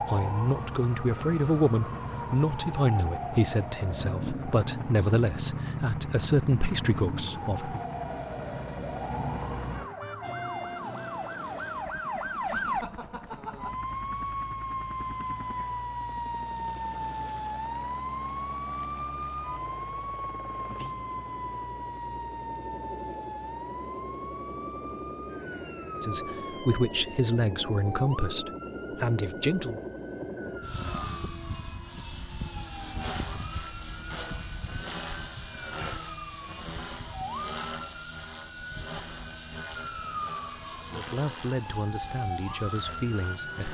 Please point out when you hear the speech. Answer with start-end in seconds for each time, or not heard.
0.1-7.8, 26.0-29.8, 40.9-43.6.